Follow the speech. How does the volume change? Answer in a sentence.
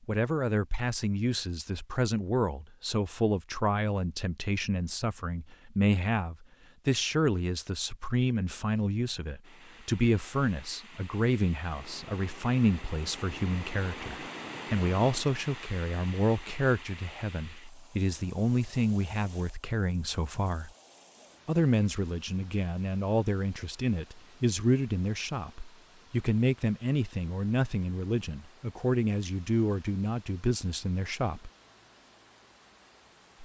The loudness of the speech stays about the same.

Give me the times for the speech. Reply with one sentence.
The speech can be heard from 0.1 to 20.7 s and from 21.4 to 31.5 s.